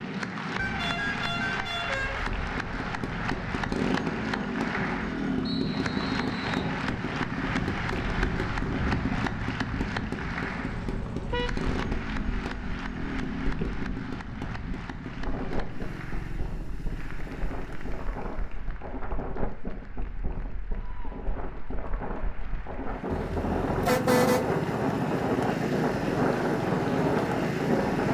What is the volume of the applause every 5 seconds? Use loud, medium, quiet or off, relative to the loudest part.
loud, loud, medium, quiet, quiet, medium.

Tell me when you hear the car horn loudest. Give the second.
24 s.